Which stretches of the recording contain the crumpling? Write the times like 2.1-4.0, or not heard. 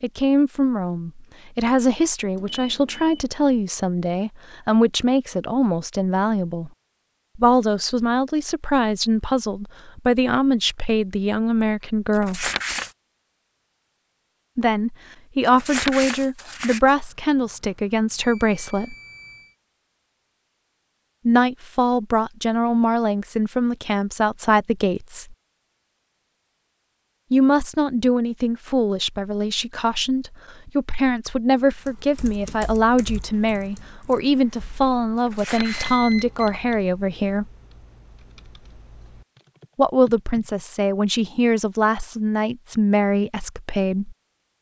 12.1-12.9, 15.4-16.9, 35.1-36.0.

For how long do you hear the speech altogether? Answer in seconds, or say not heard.
35 s.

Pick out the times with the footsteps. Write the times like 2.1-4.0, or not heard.
not heard.